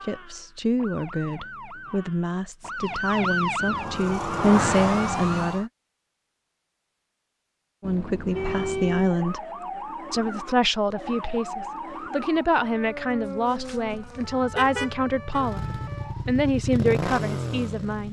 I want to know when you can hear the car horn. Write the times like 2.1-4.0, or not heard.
3.5-4.2, 7.8-9.2, 14.6-15.4.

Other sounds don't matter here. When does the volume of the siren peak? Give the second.
5 s.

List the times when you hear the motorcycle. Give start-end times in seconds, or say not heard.
15.3-18.0.